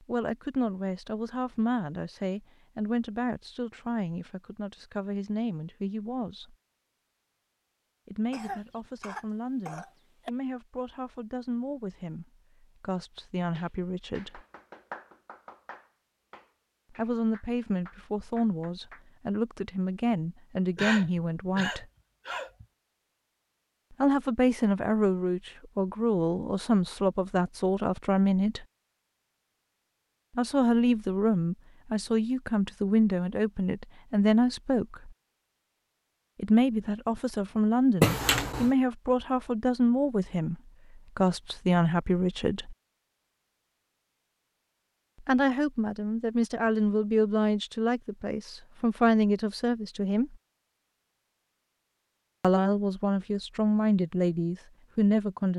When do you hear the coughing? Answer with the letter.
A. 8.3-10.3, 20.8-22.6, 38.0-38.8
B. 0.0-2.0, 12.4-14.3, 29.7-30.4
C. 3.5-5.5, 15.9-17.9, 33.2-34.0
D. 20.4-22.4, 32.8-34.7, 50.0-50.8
A.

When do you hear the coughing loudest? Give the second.
38 s.